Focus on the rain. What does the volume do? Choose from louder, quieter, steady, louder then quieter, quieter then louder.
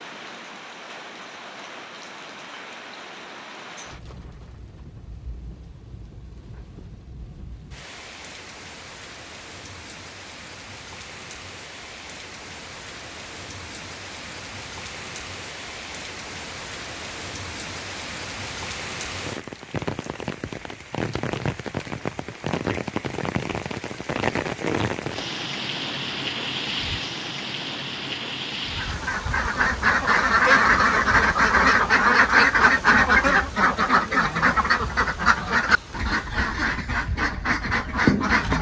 louder then quieter.